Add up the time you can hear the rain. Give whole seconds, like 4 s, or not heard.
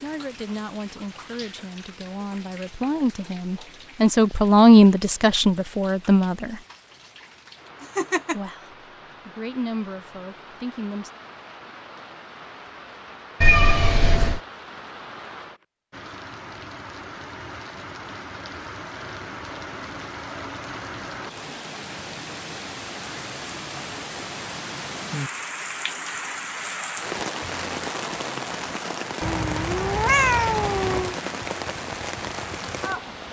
33 s.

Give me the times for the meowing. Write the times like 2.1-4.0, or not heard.
7.8-8.4, 13.4-14.4, 29.2-31.2.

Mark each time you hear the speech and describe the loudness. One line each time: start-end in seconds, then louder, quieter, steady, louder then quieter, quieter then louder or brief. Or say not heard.
0.0-6.6 louder then quieter
8.3-11.1 brief.